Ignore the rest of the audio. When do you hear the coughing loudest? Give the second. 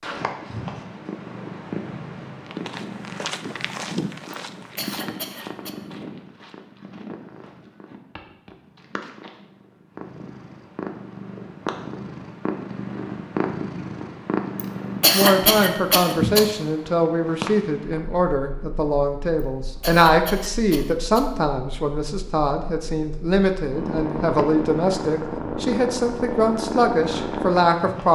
15 s.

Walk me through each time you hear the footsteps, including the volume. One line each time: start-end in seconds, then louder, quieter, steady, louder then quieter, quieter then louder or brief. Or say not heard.
2.4-9.6 quieter.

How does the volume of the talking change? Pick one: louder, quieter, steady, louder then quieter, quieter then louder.
steady.